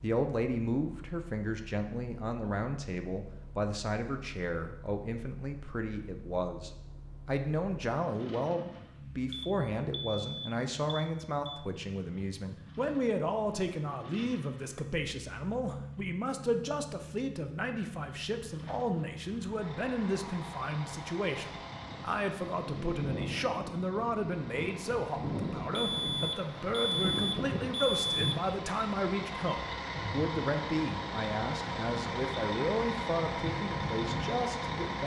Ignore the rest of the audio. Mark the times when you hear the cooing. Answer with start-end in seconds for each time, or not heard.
not heard.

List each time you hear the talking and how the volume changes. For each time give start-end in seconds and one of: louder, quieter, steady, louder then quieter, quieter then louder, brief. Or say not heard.
0.0-35.0 steady.